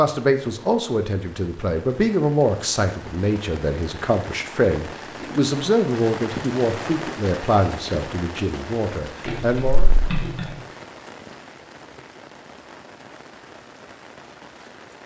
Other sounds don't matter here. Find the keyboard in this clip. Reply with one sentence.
You can hear the keyboard from 9.2 to 10.5 s.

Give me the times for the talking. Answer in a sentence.
The talking can be heard from 0.0 to 9.9 s.